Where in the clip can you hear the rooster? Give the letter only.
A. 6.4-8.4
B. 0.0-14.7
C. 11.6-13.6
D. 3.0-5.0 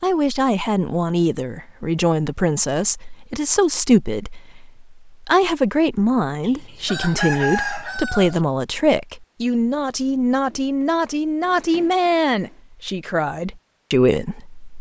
A.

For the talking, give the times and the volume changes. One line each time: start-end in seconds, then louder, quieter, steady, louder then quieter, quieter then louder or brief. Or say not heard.
0.0-14.7 steady.